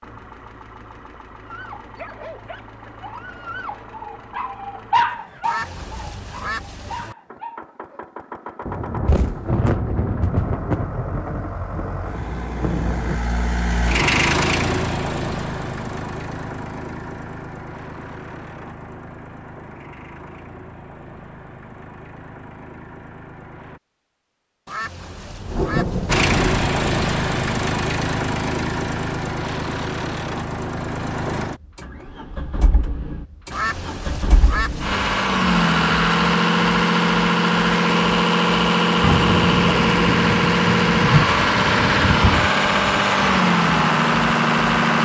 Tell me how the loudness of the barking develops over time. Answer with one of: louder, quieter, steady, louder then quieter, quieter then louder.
louder then quieter.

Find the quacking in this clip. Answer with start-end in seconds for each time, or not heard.
5.4-7.2, 24.6-26.3, 33.5-35.0.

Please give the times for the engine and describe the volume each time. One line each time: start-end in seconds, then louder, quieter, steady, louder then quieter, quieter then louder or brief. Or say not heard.
0.0-23.8 louder then quieter
26.1-45.0 quieter then louder.